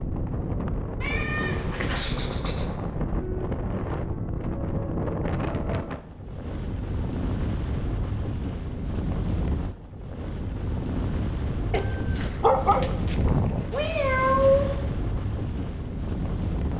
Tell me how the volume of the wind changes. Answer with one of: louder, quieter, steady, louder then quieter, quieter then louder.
steady.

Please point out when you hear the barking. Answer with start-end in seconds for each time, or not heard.
11.7-13.7.